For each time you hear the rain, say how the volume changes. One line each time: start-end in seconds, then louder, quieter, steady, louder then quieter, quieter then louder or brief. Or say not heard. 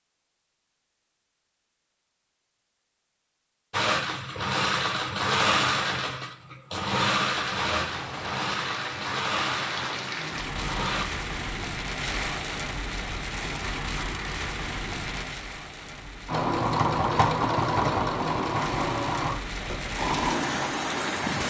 7.7-21.4 quieter then louder.